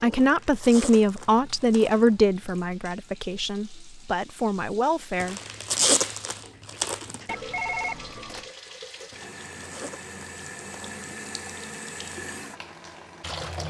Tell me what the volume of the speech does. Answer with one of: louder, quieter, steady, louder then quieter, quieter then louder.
quieter then louder.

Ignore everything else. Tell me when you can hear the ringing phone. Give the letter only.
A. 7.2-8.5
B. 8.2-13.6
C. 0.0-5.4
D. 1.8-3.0
A.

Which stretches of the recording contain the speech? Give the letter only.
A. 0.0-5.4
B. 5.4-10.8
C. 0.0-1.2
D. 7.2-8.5
A.